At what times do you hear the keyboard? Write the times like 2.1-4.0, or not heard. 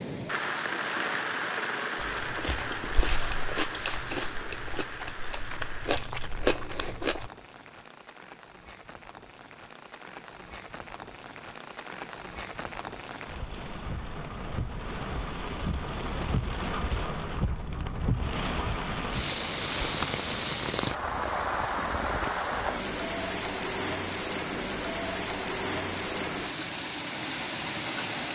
not heard.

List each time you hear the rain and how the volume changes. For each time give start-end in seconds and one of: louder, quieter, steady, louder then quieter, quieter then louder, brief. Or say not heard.
0.0-28.3 quieter then louder.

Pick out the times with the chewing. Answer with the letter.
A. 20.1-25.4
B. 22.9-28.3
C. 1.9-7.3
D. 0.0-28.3
C.